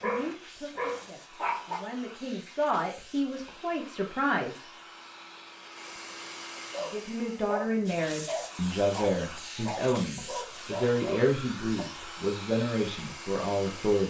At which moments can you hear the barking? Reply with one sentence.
The barking can be heard from 0.0 to 1.8 s and from 6.7 to 11.8 s.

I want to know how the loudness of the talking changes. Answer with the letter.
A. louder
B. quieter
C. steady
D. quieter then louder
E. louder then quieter
A.